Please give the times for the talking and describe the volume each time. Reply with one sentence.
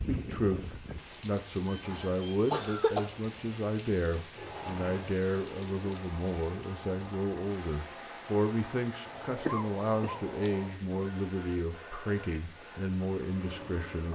The talking can be heard from 0.1 to 14.1 s, at a steady volume.